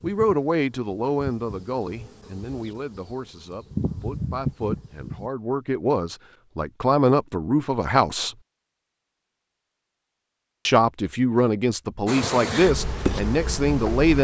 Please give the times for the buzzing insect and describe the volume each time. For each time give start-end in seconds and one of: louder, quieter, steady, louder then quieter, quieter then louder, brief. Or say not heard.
0.0-5.3 quieter then louder
12.1-14.1 brief.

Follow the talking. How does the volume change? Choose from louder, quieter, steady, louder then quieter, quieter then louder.
quieter then louder.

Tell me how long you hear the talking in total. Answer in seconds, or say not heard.
12 s.